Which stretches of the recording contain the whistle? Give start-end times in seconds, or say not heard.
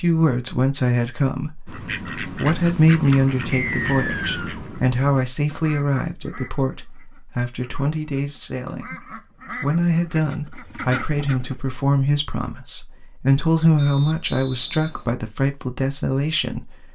3.5-4.5, 13.8-15.1.